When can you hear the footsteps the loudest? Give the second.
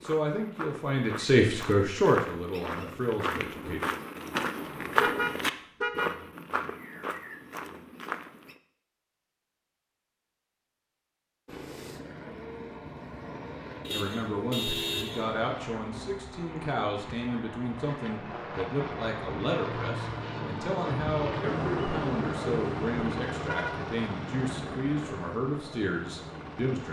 5 s.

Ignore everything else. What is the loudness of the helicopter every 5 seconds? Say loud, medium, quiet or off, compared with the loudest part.
off, off, medium, medium, loud, medium.